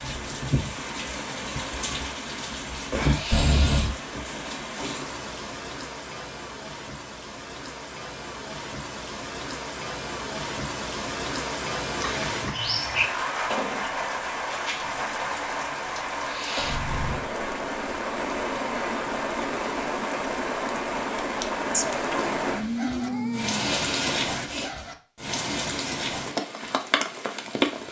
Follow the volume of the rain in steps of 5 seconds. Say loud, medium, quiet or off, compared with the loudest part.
loud, medium, loud, loud, loud, loud.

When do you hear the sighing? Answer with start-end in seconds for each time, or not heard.
3.0-3.9, 16.2-16.8, 23.5-24.7.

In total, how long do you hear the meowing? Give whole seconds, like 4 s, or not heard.
4 s.